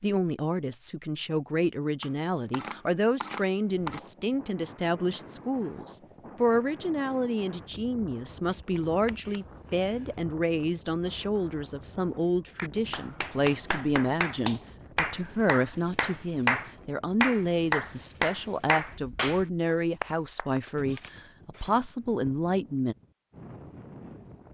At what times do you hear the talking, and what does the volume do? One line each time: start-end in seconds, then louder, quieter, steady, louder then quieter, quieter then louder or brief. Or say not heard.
0.0-22.9 steady.